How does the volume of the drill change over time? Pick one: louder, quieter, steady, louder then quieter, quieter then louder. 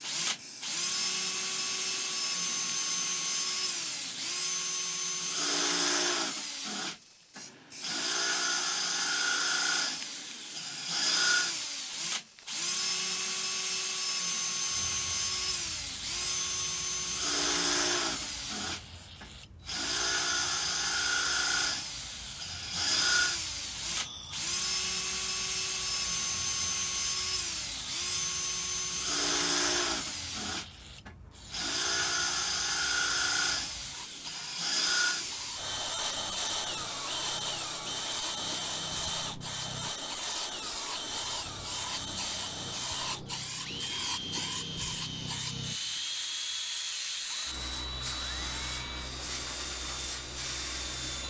quieter.